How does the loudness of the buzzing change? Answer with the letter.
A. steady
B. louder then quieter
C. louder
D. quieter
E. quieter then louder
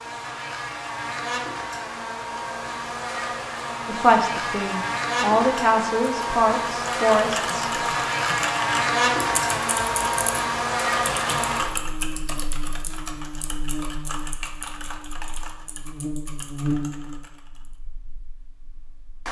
B.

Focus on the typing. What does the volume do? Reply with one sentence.
The loudness of the typing goes down.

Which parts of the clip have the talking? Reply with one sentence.
You can hear the talking from 3.9 to 7.7 s.